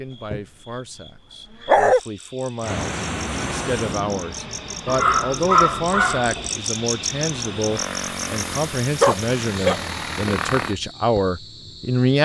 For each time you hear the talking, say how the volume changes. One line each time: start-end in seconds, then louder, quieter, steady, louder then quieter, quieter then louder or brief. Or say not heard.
0.0-12.2 louder.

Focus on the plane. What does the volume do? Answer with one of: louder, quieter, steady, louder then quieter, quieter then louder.
quieter then louder.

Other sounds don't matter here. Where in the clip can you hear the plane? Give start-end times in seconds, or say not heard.
2.6-10.8.